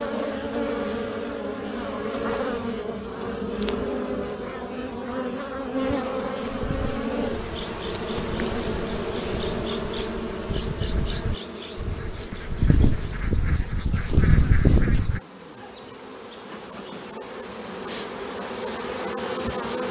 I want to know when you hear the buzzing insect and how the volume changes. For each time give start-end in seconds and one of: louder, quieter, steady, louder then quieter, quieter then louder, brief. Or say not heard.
0.0-19.8 quieter then louder.